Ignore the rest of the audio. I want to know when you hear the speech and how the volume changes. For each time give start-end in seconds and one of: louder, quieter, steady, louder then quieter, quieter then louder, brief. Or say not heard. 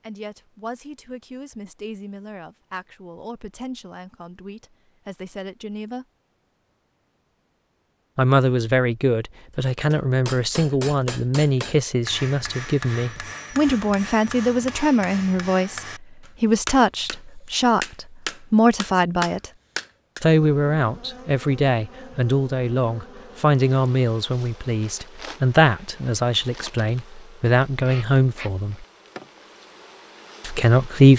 0.0-6.0 steady
8.2-19.5 steady
20.2-28.9 steady
30.4-31.1 brief.